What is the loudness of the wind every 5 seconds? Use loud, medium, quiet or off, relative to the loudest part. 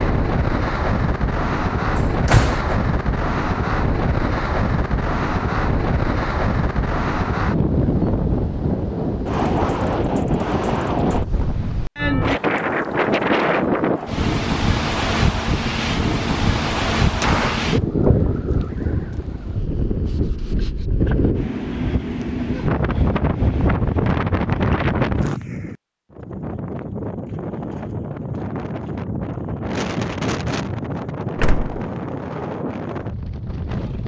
loud, loud, loud, loud, loud, medium, medium.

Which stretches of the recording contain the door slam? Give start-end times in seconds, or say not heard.
1.9-2.6, 17.1-17.7, 31.4-31.8.